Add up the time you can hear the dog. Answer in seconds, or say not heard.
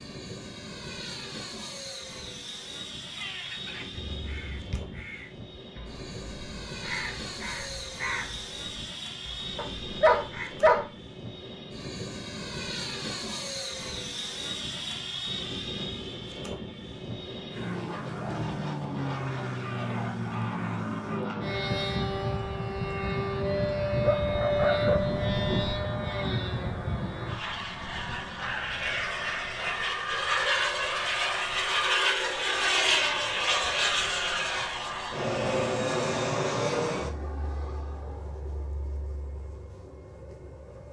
3 s.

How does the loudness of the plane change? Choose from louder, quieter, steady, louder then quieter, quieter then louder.
louder.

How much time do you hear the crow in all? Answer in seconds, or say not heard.
11 s.